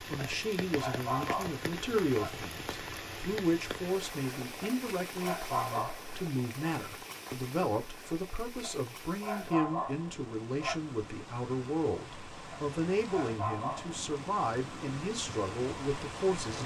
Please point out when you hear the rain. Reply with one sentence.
You can hear the rain from 0.0 to 16.6 s.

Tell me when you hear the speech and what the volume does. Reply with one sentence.
The speech can be heard from 0.1 to 16.6 s, at a steady volume.